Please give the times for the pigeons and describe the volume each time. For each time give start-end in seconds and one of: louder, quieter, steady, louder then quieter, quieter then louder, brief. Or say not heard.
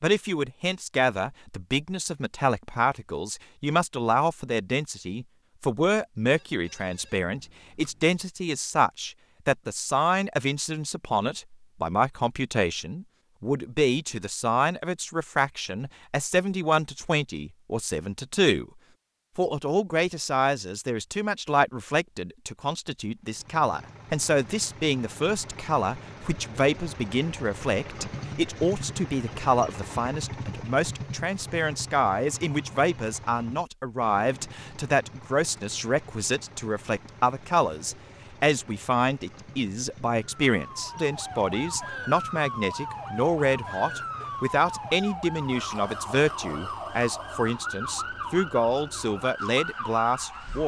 not heard.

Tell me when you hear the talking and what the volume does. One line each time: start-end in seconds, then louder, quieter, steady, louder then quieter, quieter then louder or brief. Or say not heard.
0.0-18.6 steady
19.4-50.6 steady.